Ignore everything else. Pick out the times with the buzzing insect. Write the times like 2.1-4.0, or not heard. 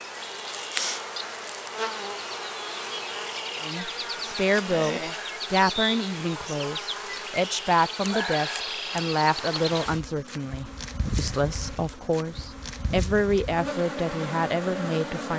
0.0-15.3.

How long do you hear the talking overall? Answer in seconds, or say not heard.
12 s.